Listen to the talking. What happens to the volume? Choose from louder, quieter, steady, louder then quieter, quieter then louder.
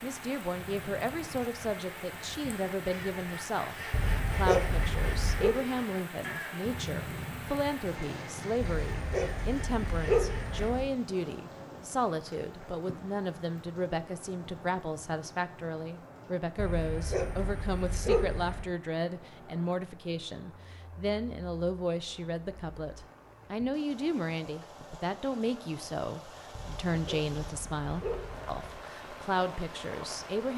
steady.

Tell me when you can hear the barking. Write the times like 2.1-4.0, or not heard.
3.9-5.6, 8.6-10.9, 16.6-18.8, 26.6-28.8.